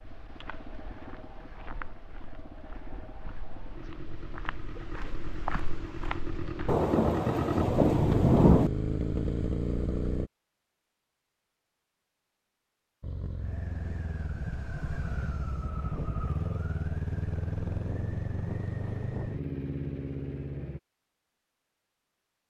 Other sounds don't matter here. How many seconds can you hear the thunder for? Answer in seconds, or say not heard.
2 s.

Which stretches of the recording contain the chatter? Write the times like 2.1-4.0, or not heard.
not heard.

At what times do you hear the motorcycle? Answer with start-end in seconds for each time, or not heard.
0.0-10.3, 13.0-20.8.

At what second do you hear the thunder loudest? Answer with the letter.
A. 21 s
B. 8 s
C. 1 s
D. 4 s
B.